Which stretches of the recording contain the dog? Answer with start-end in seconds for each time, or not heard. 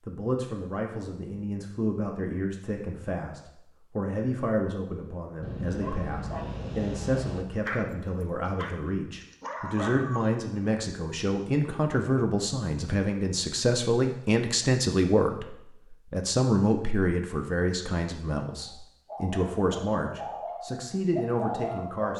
5.4-10.3, 18.6-22.1.